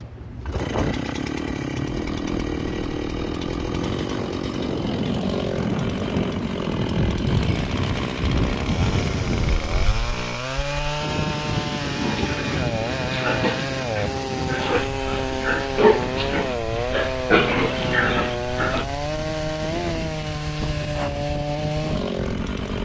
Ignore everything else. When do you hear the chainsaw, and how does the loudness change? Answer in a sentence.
The chainsaw can be heard from 0.0 to 22.8 s, at a steady volume.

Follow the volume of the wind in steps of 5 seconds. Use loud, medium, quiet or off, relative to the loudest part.
medium, loud, loud, medium, medium.